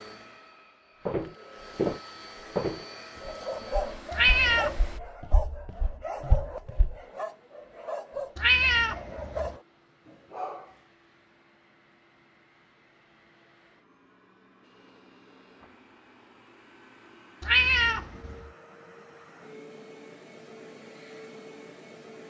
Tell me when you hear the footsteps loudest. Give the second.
2 s.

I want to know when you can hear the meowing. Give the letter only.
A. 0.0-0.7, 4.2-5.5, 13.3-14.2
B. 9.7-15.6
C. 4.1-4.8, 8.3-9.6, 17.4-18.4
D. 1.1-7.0
C.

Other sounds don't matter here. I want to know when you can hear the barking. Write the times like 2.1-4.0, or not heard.
3.2-10.8.